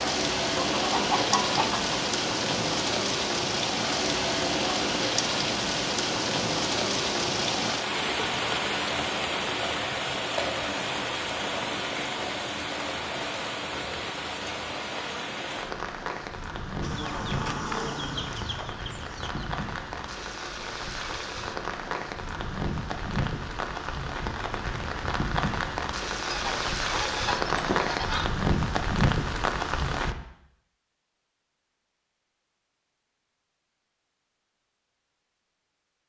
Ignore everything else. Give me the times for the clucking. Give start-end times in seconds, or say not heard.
0.8-2.0, 16.8-19.4, 26.2-28.2.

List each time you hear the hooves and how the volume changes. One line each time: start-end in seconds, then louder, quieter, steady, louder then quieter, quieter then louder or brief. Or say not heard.
not heard.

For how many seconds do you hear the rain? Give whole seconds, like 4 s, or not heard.
30 s.